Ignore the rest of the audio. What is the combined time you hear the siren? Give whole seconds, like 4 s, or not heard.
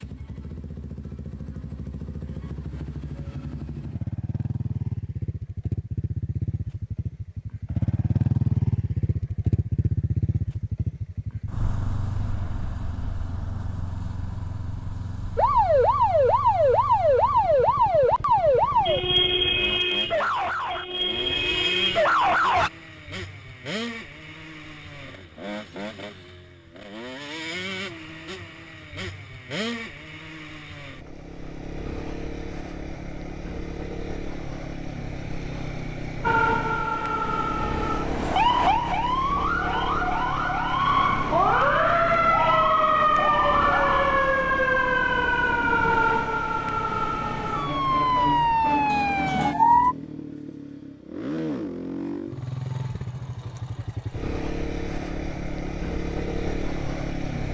21 s.